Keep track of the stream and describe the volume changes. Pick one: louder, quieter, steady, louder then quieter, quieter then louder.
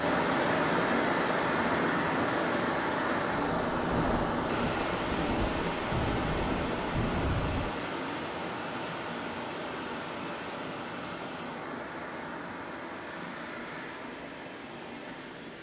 quieter.